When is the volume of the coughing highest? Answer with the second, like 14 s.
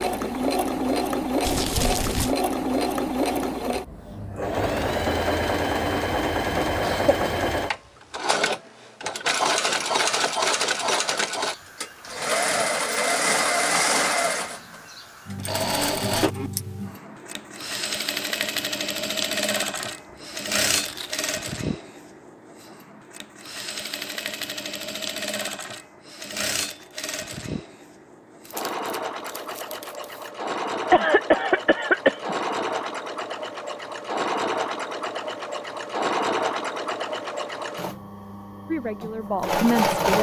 32 s.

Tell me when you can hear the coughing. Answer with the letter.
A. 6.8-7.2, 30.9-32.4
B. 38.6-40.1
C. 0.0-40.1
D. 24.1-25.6
A.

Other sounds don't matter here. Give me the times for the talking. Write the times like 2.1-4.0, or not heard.
38.6-40.1.